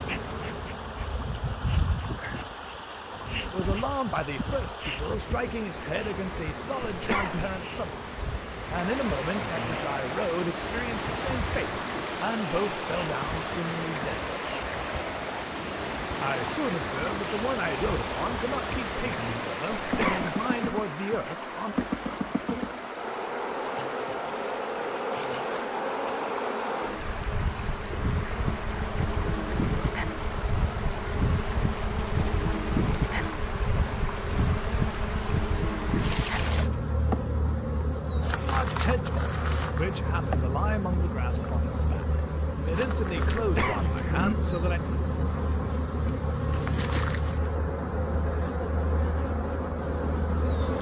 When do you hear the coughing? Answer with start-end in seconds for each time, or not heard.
6.9-7.6, 19.8-20.4, 43.4-44.4.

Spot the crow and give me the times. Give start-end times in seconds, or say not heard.
not heard.